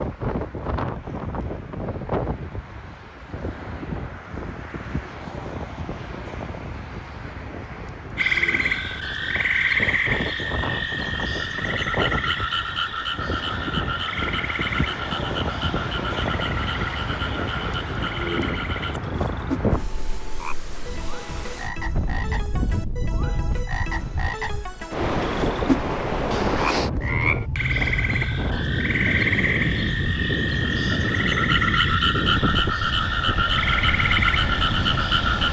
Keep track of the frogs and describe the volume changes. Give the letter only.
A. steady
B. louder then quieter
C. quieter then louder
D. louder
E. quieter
C.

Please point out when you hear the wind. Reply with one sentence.
You can hear the wind from 0.0 to 35.4 s.